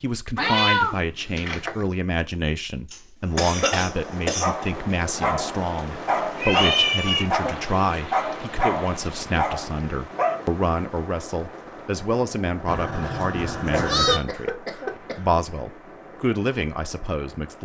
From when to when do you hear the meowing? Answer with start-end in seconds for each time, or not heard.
0.3-1.9, 6.3-7.2, 12.7-14.2.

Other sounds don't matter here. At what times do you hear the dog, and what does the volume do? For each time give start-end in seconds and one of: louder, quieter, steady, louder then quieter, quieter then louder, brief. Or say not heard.
4.4-10.4 steady.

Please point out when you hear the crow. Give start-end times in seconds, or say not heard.
not heard.